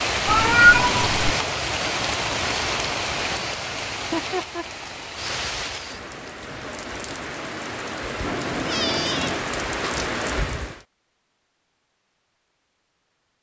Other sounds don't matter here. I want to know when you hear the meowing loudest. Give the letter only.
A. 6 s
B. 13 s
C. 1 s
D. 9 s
C.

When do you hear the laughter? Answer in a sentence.
The laughter can be heard from 4.0 to 4.7 s.